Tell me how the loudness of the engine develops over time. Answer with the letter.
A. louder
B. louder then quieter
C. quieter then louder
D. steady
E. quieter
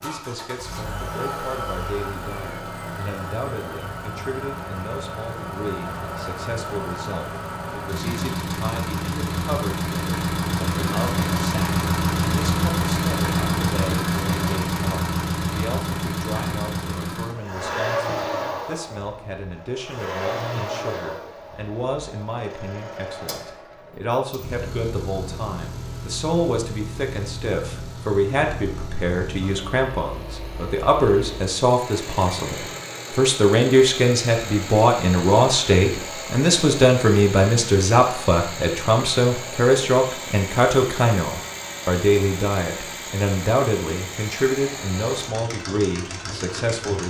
B.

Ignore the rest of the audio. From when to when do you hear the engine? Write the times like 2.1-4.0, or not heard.
0.0-47.0.